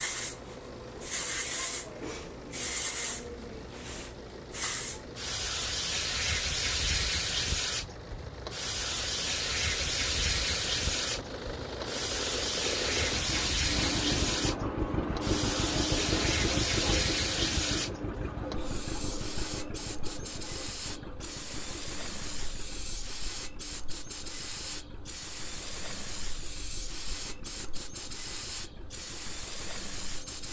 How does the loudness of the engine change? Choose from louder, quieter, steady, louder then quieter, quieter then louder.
louder then quieter.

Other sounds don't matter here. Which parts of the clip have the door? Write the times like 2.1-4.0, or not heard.
not heard.